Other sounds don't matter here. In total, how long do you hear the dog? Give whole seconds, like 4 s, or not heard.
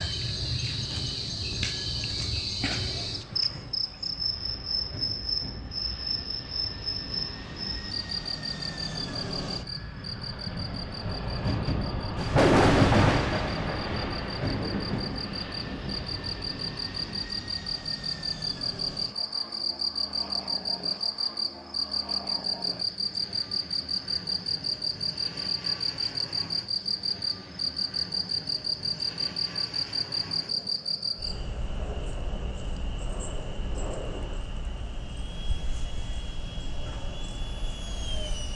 not heard.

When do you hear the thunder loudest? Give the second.
13 s.